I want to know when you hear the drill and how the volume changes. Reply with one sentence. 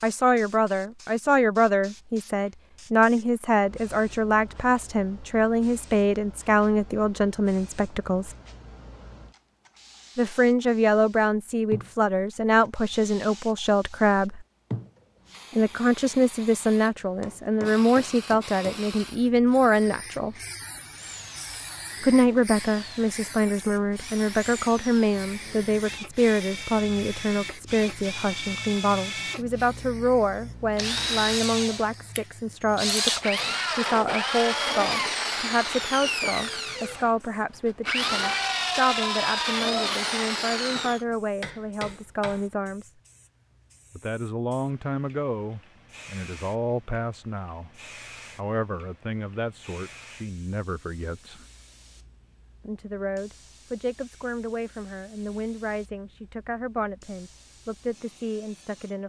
The drill can be heard from 20.9 to 41.0 s, getting louder.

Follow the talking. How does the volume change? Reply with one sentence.
The loudness of the talking goes down.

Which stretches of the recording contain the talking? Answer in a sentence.
The talking can be heard from 0.0 to 8.3 s, from 10.2 to 14.4 s, from 15.6 to 20.4 s, from 22.0 to 43.0 s, from 44.0 to 51.5 s and from 52.6 to 59.0 s.